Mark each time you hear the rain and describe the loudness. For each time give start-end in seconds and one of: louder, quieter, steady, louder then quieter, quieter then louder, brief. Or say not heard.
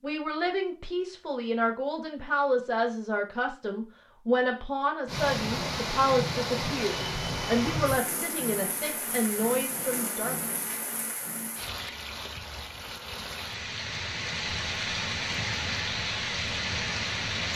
5.0-17.5 quieter then louder.